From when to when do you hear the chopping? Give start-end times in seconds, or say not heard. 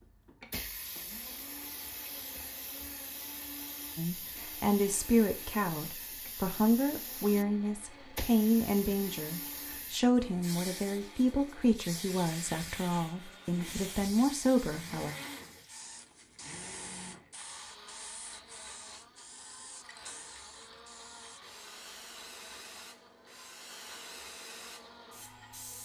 not heard.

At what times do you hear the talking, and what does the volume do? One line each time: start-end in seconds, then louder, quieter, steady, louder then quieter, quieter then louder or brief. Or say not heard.
4.0-15.2 steady.